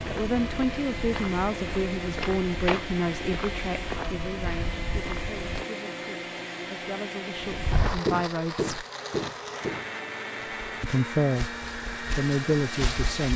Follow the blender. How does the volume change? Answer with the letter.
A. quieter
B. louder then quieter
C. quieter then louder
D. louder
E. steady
E.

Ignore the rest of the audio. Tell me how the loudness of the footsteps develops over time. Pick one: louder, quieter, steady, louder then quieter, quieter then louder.
louder then quieter.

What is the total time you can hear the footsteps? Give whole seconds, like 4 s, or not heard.
11 s.